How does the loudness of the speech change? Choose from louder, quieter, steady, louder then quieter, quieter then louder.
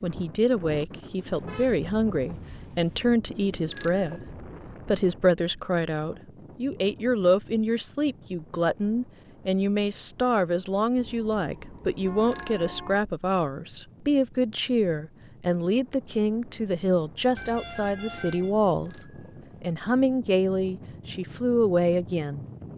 steady.